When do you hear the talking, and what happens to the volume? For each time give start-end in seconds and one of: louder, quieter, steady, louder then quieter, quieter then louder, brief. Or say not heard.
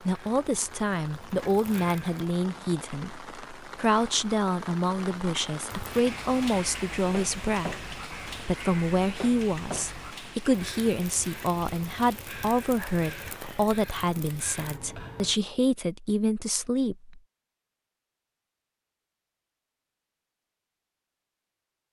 0.0-17.2 steady.